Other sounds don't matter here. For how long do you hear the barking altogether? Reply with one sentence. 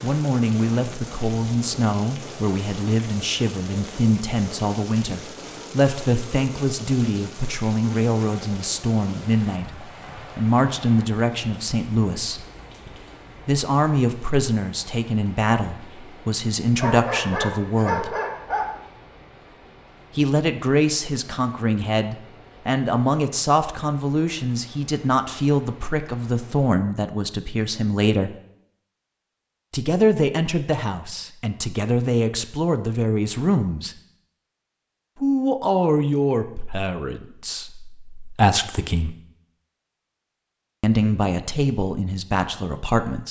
You can hear the barking for 2 seconds altogether.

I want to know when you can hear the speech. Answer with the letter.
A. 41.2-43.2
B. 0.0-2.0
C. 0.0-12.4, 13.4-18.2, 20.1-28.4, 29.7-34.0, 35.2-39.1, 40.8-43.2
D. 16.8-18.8
C.